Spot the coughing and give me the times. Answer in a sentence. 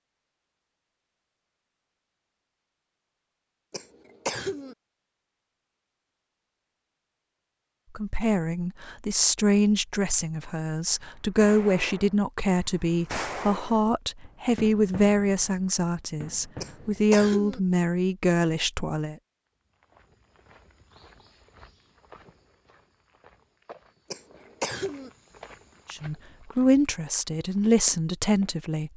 The coughing can be heard from 3.7 to 4.8 s, from 16.6 to 17.6 s and from 24.1 to 25.1 s.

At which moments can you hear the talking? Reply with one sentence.
You can hear the talking from 8.0 to 19.1 s and from 25.9 to 28.9 s.